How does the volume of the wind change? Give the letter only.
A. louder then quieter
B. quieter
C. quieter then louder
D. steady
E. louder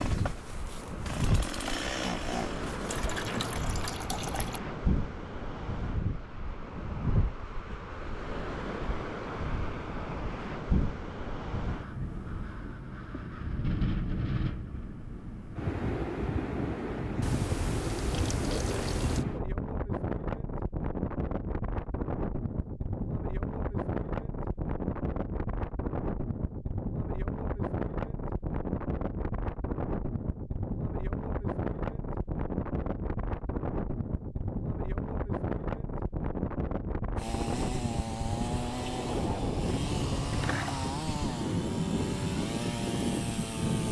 D.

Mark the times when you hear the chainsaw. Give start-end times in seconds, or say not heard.
0.0-3.0, 37.1-43.8.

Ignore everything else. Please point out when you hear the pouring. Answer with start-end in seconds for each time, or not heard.
2.9-4.6, 17.2-19.2, 40.3-40.9.